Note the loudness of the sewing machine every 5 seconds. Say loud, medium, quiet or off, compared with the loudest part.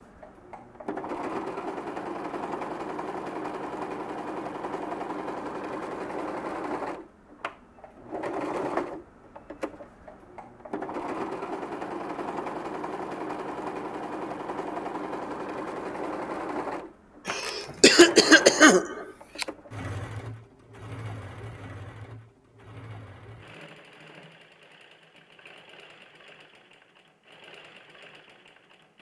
loud, loud, loud, loud, medium, quiet.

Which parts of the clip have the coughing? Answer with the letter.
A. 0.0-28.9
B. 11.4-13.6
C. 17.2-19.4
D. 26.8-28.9
C.